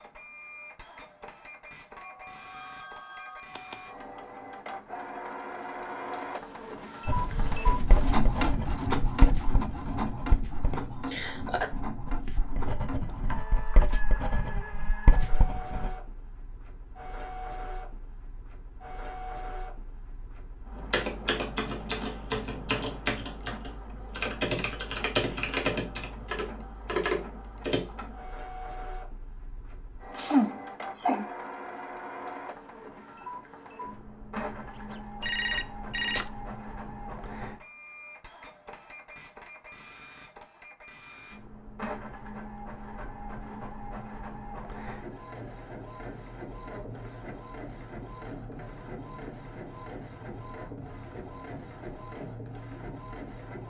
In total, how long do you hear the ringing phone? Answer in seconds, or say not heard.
4 s.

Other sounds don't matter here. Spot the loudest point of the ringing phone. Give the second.
35 s.